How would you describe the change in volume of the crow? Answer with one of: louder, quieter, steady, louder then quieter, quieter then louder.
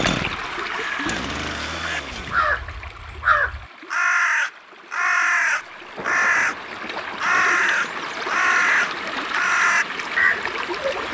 louder.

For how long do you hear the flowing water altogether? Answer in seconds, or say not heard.
11 s.